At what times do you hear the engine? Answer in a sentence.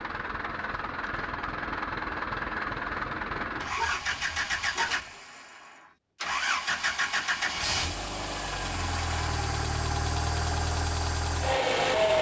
The engine can be heard from 0.0 to 12.1 s.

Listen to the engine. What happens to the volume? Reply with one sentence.
The volume of the engine stays about the same.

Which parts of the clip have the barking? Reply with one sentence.
You can hear the barking from 3.5 to 5.0 s.